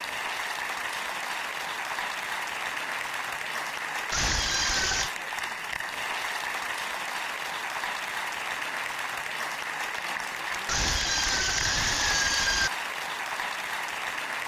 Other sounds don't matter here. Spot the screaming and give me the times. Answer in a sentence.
The screaming can be heard from 4.1 to 5.1 s and from 10.7 to 12.7 s.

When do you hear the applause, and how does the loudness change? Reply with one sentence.
You can hear the applause from 0.0 to 14.4 s, at a steady volume.